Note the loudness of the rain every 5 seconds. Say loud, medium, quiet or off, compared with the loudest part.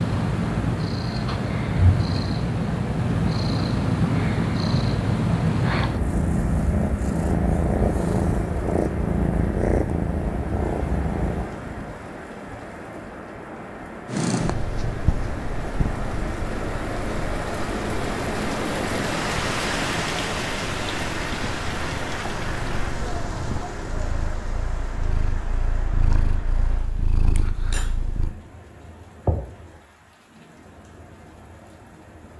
medium, medium, medium, loud, loud, medium, quiet.